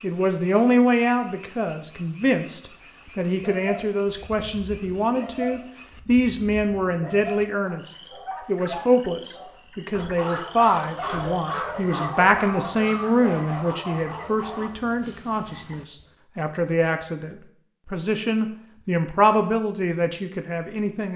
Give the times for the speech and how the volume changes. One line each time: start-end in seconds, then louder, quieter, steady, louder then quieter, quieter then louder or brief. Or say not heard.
0.0-21.1 steady.